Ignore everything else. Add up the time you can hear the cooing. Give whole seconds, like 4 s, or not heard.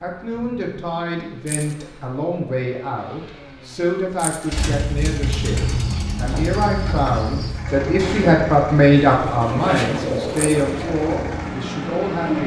7 s.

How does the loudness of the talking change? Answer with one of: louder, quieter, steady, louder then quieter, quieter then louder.
louder then quieter.